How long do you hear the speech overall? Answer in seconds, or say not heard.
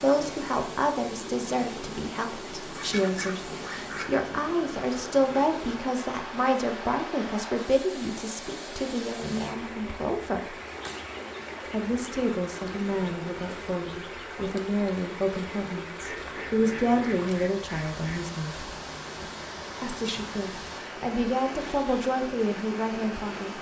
21 s.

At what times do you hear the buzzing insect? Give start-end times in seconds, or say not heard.
not heard.